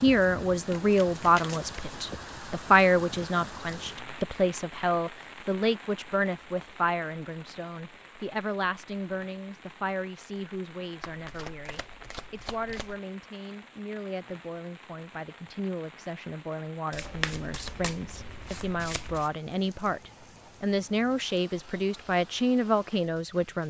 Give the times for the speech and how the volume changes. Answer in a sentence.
You can hear the speech from 0.0 to 23.6 s, getting quieter then louder.